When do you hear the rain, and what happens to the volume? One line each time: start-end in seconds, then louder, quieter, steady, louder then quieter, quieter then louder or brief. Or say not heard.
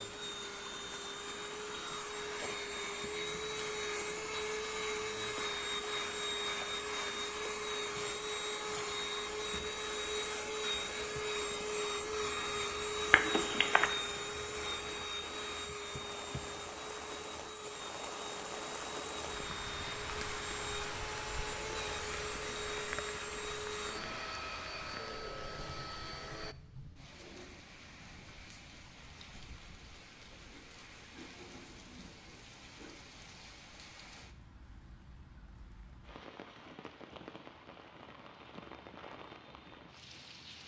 0.0-40.6 louder then quieter.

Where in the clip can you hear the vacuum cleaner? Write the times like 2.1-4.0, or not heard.
0.0-26.6.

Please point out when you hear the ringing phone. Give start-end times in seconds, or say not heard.
13.1-13.9.